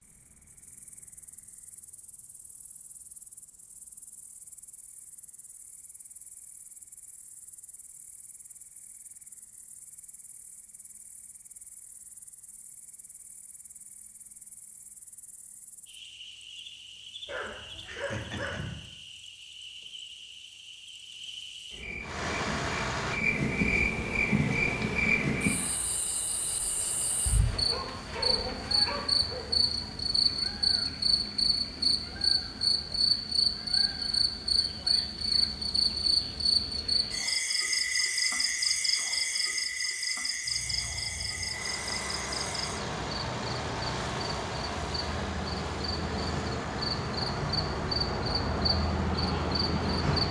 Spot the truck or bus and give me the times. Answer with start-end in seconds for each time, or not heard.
22.0-26.1, 40.5-50.2.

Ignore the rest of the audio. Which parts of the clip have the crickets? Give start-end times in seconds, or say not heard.
0.0-50.2.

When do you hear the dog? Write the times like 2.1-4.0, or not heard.
17.2-18.9, 27.5-29.6.